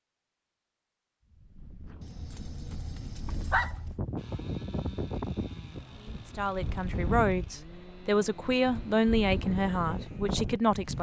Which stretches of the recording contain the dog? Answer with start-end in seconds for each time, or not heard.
2.0-3.9.